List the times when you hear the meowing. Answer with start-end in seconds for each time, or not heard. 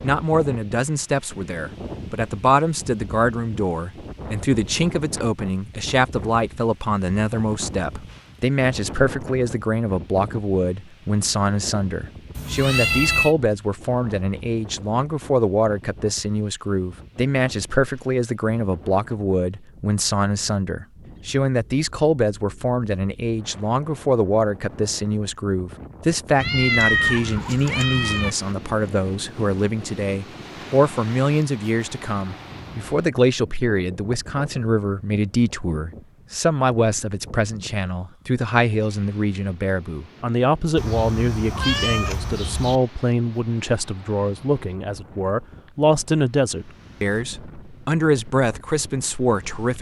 12.3-13.3, 26.4-28.3, 40.8-42.8.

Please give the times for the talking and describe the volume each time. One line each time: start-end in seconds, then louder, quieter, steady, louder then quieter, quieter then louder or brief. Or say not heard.
0.0-49.7 steady.